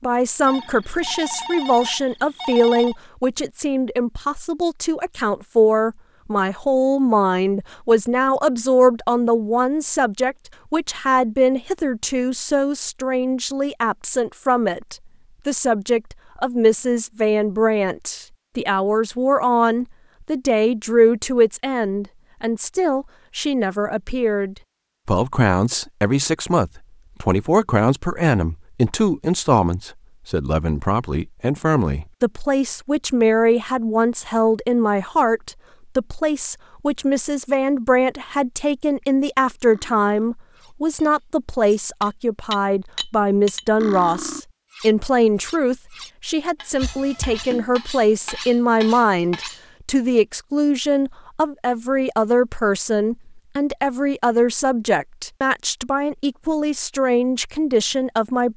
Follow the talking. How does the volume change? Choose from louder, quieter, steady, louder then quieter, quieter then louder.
steady.